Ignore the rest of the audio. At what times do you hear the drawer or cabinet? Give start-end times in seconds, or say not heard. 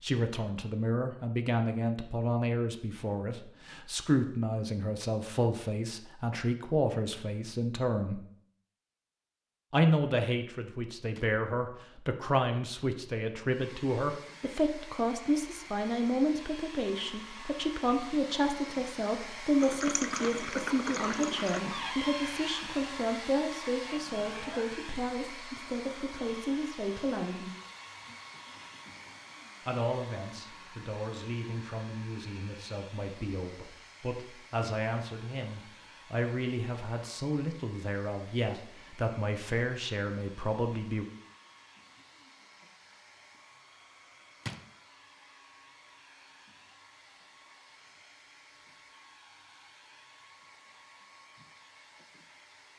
21.6-22.7.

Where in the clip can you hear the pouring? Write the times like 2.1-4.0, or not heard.
19.6-21.6.